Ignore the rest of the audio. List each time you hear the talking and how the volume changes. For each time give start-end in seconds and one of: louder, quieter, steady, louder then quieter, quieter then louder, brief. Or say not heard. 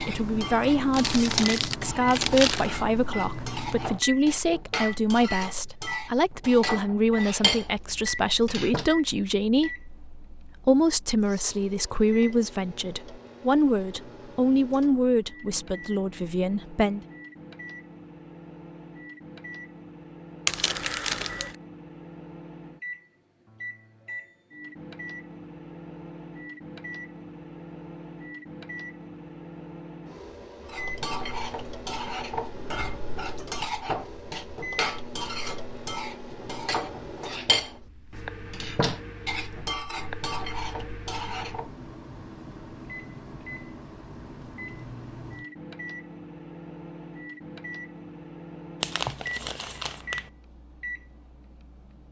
0.0-17.0 steady.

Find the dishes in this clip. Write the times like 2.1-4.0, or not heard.
0.0-8.9, 30.6-41.7.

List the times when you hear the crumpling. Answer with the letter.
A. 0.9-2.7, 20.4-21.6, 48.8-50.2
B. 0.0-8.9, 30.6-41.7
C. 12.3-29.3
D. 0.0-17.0
A.